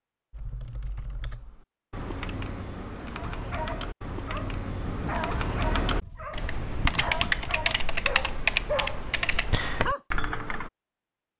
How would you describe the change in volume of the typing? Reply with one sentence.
The loudness of the typing goes up.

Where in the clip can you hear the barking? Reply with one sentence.
You can hear the barking from 3.1 to 10.0 s.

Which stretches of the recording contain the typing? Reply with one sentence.
The typing can be heard from 0.3 to 10.7 s.